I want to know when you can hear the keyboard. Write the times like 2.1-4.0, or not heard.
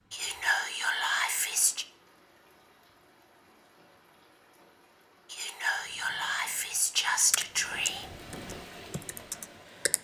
7.3-9.9.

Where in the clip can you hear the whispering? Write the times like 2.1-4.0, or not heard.
0.1-1.9, 5.3-8.1.